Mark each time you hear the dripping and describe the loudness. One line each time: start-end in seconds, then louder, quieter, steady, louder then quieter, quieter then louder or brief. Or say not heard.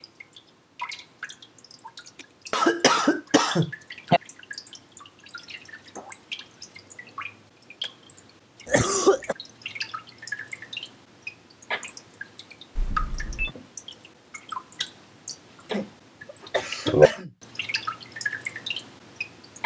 0.0-19.6 louder.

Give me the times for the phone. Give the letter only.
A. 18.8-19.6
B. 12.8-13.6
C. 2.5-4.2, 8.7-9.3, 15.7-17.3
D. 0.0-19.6
B.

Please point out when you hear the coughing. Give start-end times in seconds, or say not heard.
2.5-4.2, 8.7-9.3, 15.7-17.3.